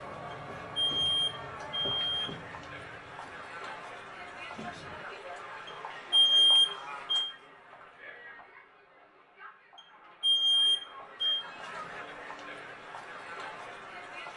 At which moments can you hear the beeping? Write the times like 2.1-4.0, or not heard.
0.3-2.3, 5.7-7.3, 9.8-11.4.